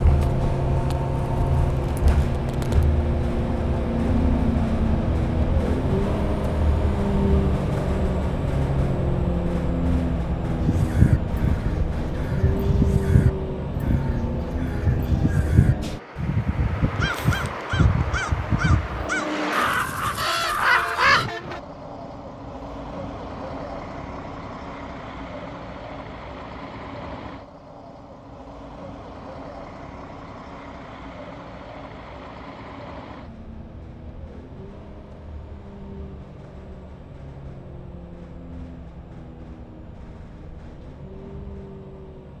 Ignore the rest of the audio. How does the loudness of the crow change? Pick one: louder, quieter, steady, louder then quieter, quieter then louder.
steady.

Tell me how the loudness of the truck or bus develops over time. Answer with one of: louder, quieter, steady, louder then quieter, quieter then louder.
quieter.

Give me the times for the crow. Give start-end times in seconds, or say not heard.
10.6-21.3.